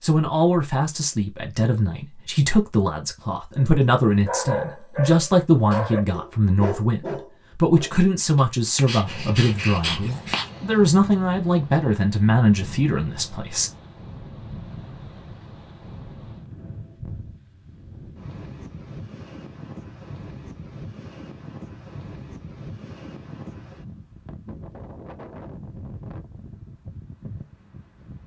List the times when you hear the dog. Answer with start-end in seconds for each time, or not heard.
3.5-10.5.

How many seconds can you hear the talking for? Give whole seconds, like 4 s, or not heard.
14 s.